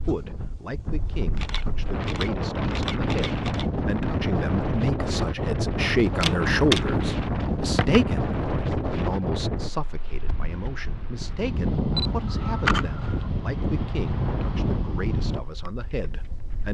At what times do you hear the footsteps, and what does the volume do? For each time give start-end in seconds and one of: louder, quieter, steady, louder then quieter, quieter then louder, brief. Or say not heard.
not heard.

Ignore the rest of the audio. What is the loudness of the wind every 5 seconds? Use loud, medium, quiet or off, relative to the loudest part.
loud, loud, loud, medium.